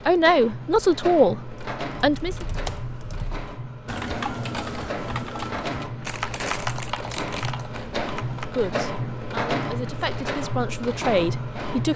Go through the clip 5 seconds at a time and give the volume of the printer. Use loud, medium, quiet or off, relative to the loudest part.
medium, loud, loud.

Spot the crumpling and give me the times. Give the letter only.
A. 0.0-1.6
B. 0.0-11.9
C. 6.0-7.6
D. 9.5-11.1
C.